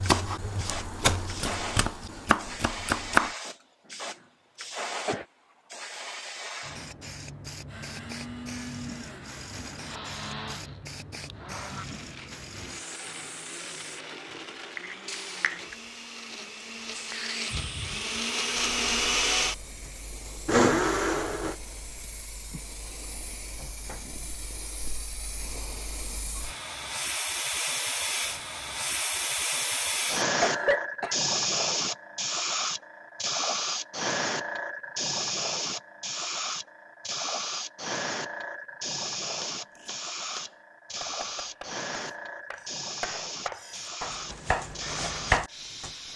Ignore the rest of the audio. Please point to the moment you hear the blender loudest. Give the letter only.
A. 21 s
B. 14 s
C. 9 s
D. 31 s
A.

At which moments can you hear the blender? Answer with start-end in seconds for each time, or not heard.
7.7-21.6.